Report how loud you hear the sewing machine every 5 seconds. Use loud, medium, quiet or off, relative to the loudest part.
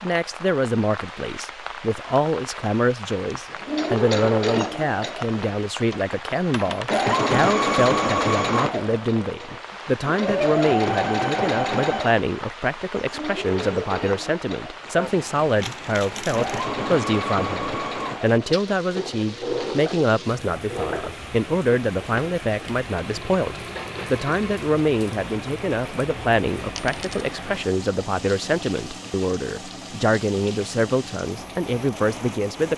loud, loud, loud, medium, medium, quiet, quiet.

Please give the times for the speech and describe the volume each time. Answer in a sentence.
The speech can be heard from 0.0 to 32.7 s, at a steady volume.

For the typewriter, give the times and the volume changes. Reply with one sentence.
You can't hear the typewriter here.